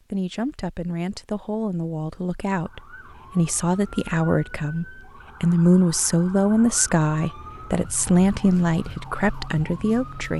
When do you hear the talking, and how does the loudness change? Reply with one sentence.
You can hear the talking from 0.1 to 10.3 s, getting louder.